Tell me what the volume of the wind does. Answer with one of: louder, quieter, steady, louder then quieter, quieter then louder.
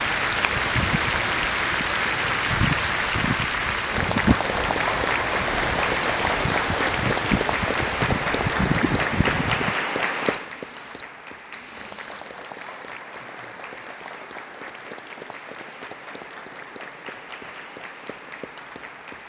steady.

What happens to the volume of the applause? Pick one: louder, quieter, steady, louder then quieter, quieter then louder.
quieter.